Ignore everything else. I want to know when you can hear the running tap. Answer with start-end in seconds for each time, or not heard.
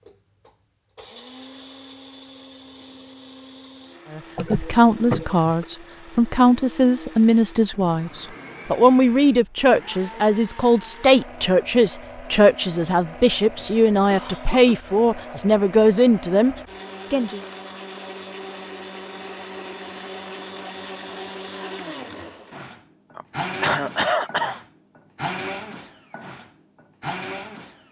not heard.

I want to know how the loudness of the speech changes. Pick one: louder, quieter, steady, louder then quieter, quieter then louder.
steady.